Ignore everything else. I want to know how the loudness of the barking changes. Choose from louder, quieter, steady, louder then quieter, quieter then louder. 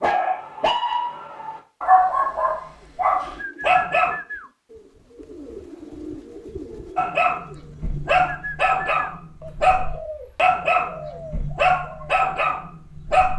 steady.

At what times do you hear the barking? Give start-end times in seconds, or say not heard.
0.0-4.2, 7.0-13.3.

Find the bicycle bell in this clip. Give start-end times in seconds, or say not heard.
not heard.